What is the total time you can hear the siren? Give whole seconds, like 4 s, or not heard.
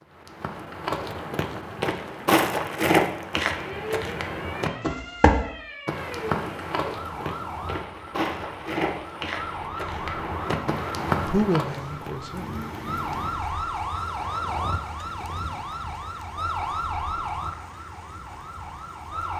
16 s.